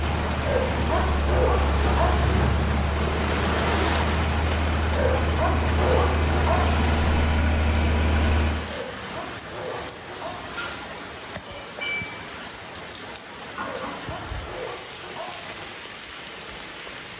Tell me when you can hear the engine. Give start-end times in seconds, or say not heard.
0.0-8.7.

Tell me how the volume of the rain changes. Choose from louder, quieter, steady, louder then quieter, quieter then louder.
quieter.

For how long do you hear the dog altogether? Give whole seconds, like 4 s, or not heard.
8 s.